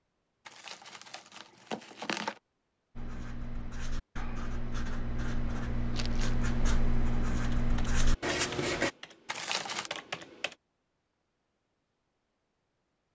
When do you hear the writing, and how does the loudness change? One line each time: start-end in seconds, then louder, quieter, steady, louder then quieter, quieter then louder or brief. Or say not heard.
3.0-8.9 louder.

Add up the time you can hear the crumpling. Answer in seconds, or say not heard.
3 s.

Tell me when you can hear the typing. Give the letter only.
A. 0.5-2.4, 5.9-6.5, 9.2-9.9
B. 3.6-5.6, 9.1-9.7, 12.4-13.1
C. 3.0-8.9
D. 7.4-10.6
D.